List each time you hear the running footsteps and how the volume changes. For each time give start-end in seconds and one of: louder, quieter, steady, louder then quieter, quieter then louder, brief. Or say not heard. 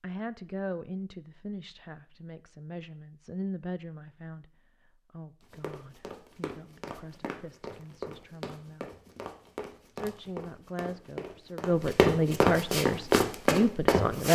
5.4-14.3 louder.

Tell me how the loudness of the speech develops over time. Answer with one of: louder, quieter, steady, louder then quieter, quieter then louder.
quieter then louder.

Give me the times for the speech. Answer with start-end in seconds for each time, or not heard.
0.0-4.5, 5.1-8.9, 9.9-14.3.